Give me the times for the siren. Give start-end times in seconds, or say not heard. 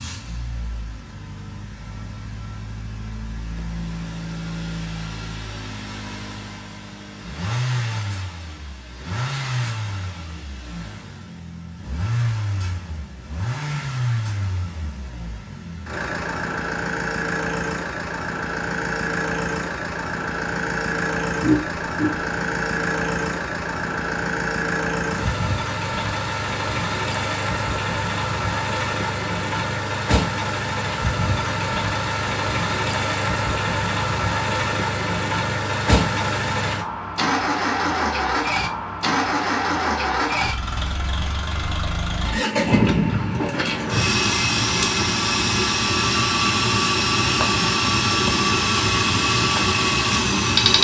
not heard.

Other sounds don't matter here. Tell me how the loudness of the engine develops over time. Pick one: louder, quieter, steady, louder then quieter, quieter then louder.
louder.